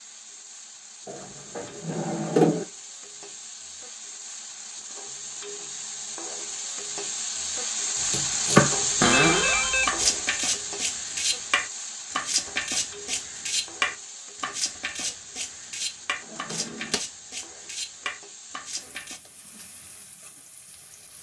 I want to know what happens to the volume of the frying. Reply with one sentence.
The volume of the frying goes up, then down.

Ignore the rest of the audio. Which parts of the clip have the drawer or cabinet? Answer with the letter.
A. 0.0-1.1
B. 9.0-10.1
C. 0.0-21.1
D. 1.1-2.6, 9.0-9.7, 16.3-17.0
D.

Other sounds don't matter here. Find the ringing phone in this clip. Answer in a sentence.
You can hear the ringing phone from 9.0 to 10.1 s.